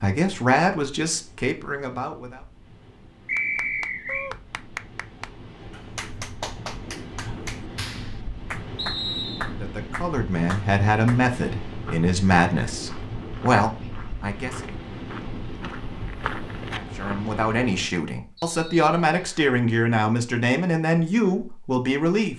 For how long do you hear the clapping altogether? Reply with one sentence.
The clapping can be heard for 8 seconds in total.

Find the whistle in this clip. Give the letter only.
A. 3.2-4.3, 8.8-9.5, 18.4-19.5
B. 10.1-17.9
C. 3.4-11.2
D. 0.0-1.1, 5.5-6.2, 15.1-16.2
A.